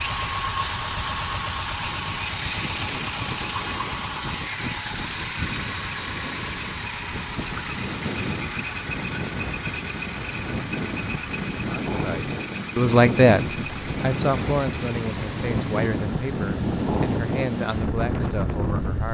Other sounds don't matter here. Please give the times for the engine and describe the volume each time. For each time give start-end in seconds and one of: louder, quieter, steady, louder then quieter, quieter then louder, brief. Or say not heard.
0.0-19.0 quieter.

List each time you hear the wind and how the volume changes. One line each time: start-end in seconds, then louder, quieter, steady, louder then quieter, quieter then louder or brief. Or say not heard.
0.0-19.0 louder.